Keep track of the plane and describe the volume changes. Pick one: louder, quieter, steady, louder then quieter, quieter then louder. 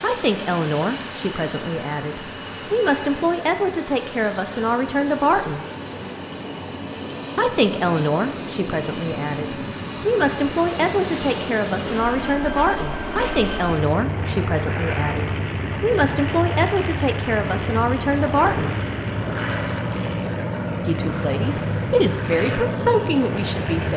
louder.